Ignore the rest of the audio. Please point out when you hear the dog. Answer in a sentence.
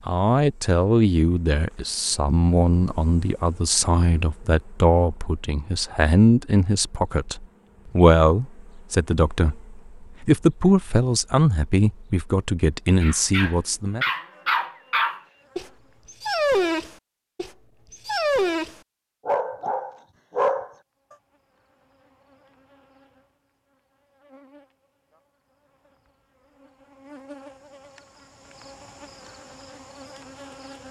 You can hear the dog from 13.0 to 20.7 s.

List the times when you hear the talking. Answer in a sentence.
You can hear the talking from 0.1 to 14.1 s.